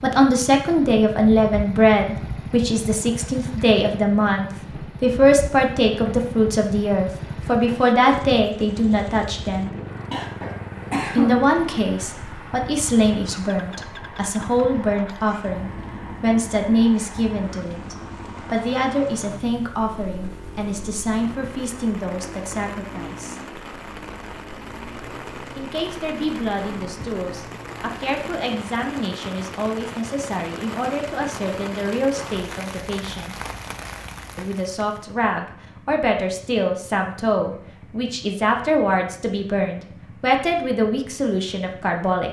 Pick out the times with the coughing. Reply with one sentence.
You can hear the coughing from 10.1 to 11.3 s.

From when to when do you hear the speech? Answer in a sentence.
The speech can be heard from 0.0 to 9.8 s, from 11.2 to 23.4 s, from 25.6 to 33.4 s and from 34.4 to 42.2 s.